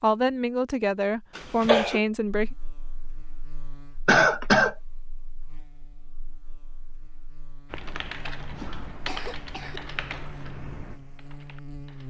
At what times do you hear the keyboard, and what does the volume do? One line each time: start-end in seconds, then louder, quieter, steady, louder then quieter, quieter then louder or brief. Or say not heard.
7.7-12.0 quieter.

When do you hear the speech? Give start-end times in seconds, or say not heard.
0.0-2.5.